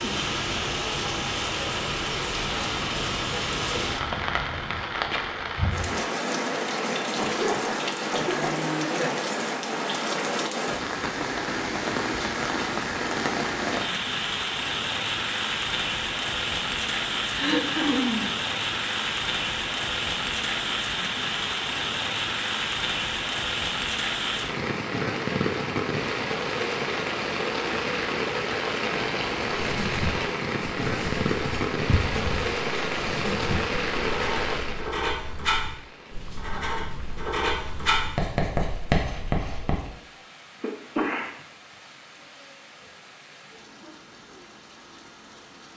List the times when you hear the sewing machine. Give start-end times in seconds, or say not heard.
not heard.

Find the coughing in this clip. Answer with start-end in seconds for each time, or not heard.
7.2-8.6, 17.4-18.3, 40.6-41.2.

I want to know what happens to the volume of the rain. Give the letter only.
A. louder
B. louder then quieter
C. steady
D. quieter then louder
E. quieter
E.